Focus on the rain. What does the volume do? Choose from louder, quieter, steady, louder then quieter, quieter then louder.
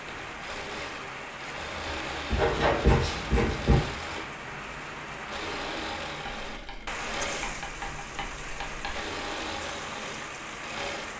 steady.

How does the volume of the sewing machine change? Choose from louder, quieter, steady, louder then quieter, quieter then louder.
steady.